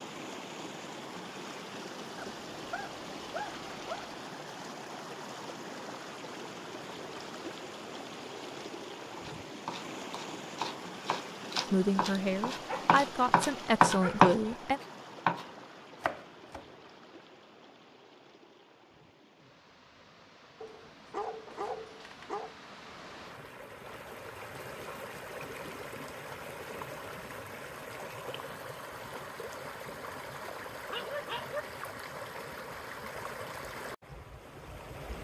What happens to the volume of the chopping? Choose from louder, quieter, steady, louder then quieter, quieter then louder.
louder then quieter.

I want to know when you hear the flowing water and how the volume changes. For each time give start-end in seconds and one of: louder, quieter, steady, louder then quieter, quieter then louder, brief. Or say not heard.
0.0-35.1 quieter then louder.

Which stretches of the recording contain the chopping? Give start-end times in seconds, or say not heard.
9.2-16.6.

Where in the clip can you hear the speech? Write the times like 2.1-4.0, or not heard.
11.7-14.8.